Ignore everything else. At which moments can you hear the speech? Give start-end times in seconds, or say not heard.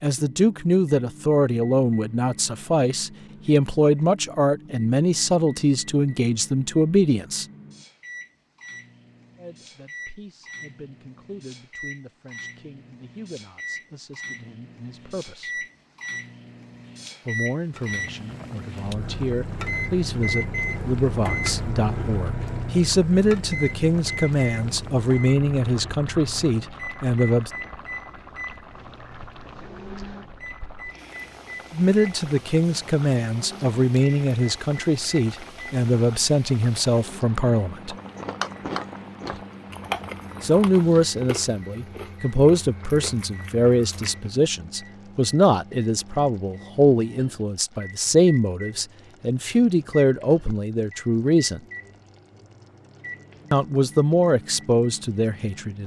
0.0-7.5, 9.3-15.7, 17.2-27.5, 31.7-38.0, 40.4-51.6, 53.5-55.8.